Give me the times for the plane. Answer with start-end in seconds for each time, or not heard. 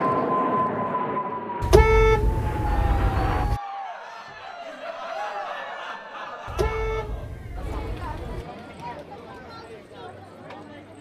0.0-3.5.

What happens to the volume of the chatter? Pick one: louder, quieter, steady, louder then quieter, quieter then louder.
quieter.